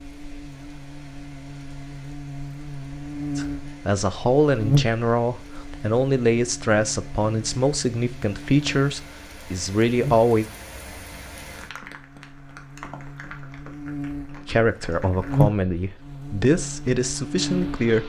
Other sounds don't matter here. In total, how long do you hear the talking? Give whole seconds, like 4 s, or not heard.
11 s.